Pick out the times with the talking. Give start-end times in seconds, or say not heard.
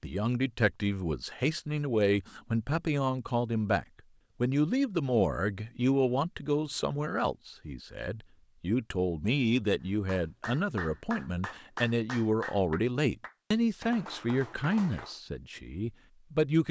0.0-16.6.